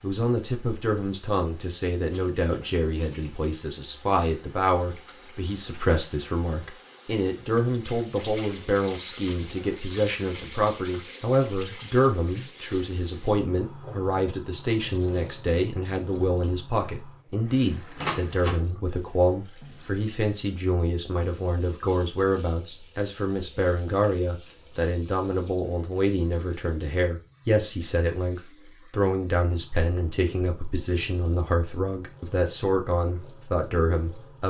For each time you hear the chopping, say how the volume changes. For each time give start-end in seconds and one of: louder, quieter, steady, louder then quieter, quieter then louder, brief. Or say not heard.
not heard.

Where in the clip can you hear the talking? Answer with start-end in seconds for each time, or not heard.
0.0-34.4.